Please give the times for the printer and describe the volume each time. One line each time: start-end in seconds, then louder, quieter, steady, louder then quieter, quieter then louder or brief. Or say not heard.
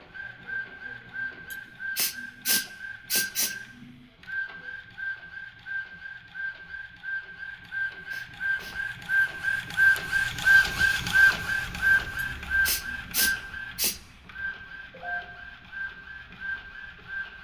0.0-17.3 louder then quieter.